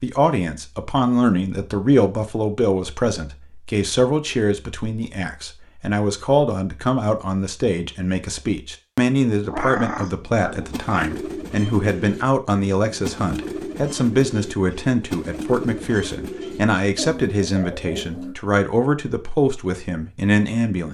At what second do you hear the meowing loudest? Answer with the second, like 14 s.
10 s.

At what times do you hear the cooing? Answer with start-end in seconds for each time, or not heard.
10.5-18.4.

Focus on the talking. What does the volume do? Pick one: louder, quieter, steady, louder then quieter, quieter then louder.
steady.